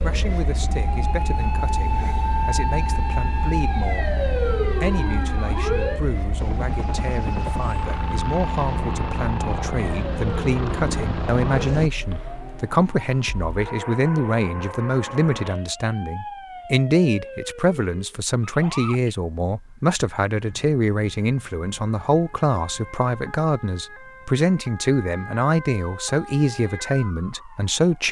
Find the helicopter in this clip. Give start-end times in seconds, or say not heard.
6.3-11.9.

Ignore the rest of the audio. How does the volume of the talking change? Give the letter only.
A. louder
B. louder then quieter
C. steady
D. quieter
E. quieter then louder
A.